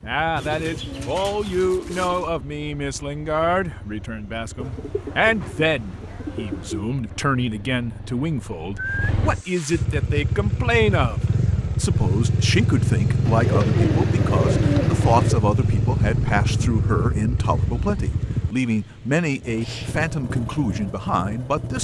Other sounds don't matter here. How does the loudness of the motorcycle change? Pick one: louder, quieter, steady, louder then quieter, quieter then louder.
louder then quieter.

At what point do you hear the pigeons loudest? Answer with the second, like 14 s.
15 s.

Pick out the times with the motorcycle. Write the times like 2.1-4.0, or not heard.
0.0-21.7.